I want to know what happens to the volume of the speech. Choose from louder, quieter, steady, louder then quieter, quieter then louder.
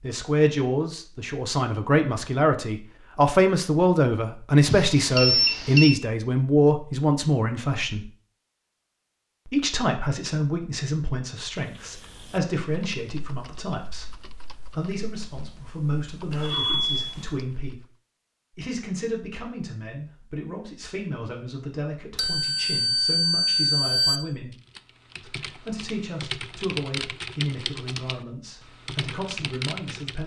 quieter.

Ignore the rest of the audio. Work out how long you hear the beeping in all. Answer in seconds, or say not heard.
4 s.